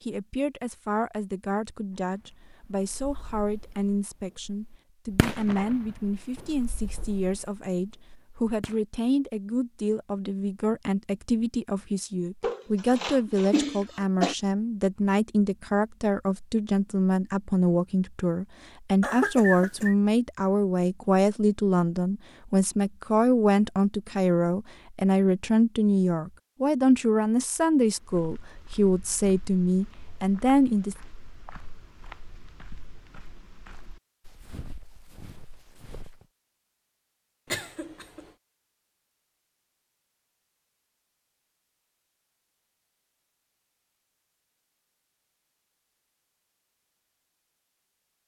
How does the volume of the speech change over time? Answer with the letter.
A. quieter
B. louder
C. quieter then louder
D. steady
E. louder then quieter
B.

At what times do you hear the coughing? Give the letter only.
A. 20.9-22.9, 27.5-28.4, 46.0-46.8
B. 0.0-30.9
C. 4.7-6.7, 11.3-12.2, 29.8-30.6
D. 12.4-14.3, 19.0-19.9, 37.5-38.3
D.